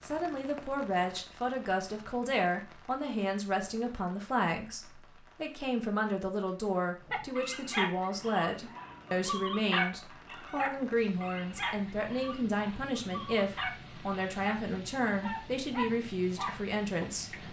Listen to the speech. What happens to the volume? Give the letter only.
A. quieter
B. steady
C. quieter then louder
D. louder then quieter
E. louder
B.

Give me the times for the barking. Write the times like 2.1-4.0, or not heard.
7.0-17.4.